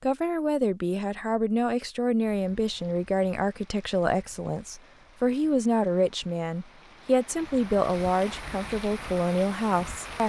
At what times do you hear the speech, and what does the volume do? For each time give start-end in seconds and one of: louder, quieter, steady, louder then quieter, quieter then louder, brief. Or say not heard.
0.0-10.2 steady.